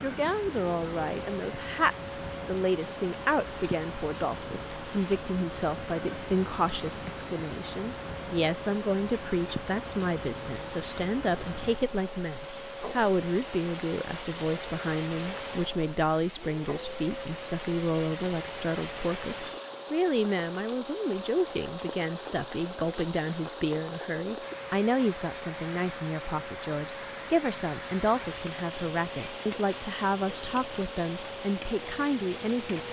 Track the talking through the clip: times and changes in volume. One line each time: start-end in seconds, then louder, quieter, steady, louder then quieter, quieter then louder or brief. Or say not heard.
0.0-32.8 steady.